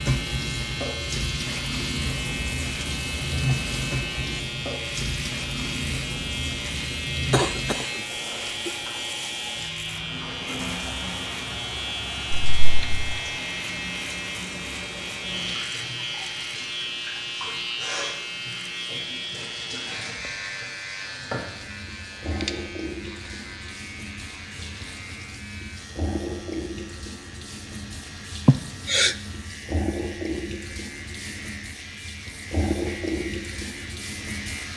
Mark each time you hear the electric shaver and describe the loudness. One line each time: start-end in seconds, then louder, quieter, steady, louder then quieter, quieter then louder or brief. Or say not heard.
0.0-34.7 quieter.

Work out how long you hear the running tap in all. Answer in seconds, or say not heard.
35 s.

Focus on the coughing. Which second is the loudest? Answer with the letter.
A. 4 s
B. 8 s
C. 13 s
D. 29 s
D.